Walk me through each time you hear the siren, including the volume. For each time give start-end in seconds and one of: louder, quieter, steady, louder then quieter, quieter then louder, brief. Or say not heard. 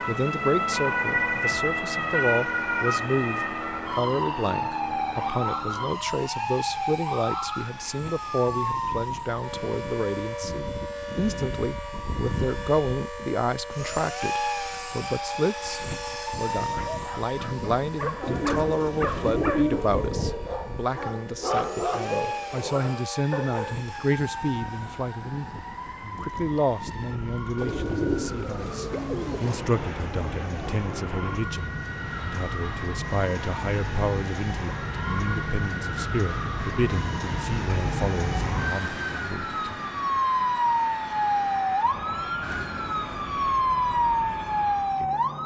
0.0-45.4 quieter then louder.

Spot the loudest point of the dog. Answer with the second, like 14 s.
22 s.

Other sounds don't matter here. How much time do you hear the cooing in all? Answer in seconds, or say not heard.
4 s.